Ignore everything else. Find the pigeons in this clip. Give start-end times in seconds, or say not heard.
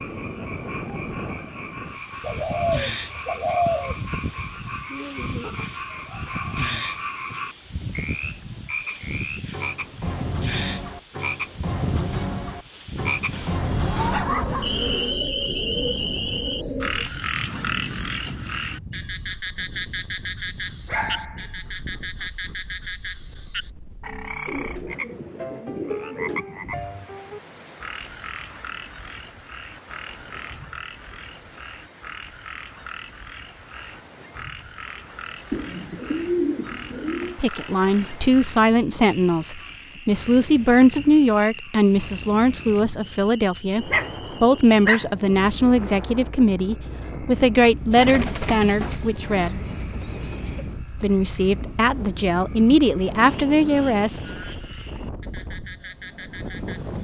2.2-4.0, 14.2-17.1, 24.4-26.4, 35.5-37.4, 47.9-50.7.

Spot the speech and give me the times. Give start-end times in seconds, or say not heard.
37.4-49.6, 51.0-54.4.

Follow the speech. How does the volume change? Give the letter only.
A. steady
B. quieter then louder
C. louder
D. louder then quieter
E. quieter
A.